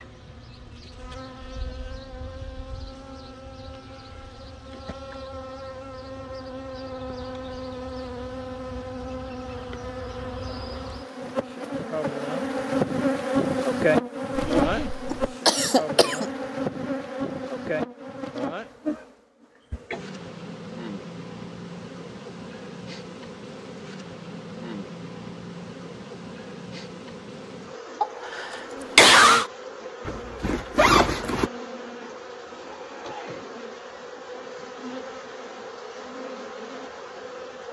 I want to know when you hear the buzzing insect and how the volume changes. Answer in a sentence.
The buzzing insect can be heard from 0.0 to 37.6 s, getting louder then quieter.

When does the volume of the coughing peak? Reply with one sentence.
The loudest moment of the coughing is at 29 seconds.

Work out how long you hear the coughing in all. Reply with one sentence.
The coughing can be heard for 3 seconds in total.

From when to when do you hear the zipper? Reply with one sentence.
You can hear the zipper from 14.3 to 15.1 s and from 30.1 to 31.5 s.